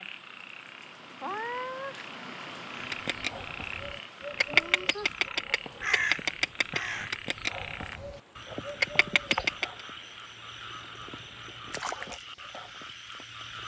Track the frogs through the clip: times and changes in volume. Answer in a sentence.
You can hear the frogs from 0.0 to 13.6 s, at a steady volume.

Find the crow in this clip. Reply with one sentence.
You can hear the crow from 2.8 to 9.8 s.